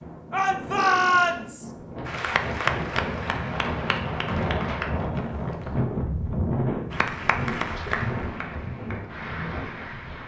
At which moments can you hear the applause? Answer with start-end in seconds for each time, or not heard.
2.0-4.8, 6.9-10.2.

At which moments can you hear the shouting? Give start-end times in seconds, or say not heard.
0.3-1.7.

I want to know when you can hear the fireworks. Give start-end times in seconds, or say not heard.
not heard.